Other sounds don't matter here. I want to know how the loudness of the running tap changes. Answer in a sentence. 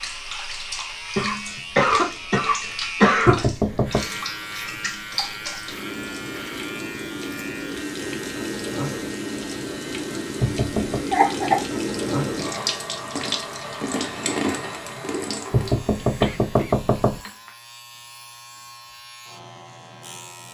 The loudness of the running tap goes up.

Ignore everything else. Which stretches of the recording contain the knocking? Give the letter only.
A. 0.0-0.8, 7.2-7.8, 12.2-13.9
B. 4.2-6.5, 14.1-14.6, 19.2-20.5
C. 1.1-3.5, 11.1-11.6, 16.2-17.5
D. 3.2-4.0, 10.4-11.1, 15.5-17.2
D.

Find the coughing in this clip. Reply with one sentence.
The coughing can be heard from 1.1 to 3.5 s, from 11.1 to 11.6 s and from 16.2 to 17.5 s.